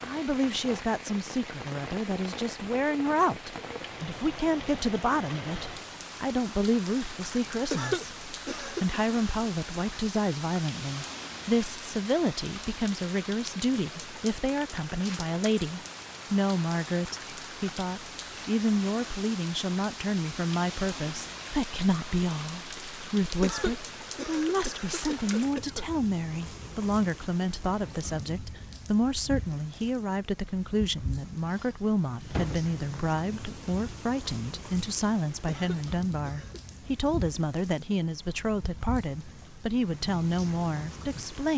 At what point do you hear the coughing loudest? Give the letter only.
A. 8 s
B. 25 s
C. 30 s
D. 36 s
A.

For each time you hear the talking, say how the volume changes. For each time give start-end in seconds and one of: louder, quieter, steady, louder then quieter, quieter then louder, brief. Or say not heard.
0.0-41.5 steady.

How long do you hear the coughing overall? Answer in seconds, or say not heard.
5 s.